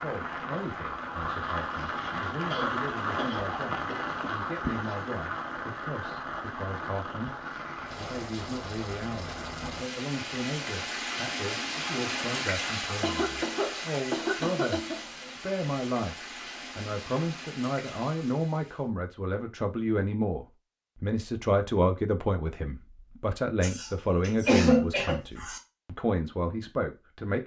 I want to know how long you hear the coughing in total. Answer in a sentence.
The coughing can be heard for 6 seconds in total.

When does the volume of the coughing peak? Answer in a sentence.
The volume of the coughing peaks at 25 seconds.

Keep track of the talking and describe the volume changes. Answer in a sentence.
The loudness of the talking goes up.